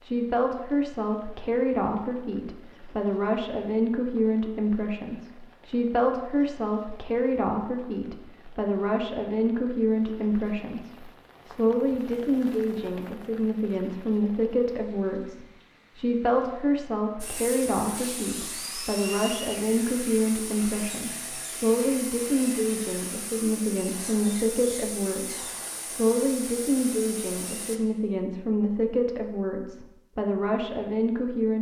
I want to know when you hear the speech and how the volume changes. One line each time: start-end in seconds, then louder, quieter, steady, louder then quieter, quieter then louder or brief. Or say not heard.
0.0-31.5 steady.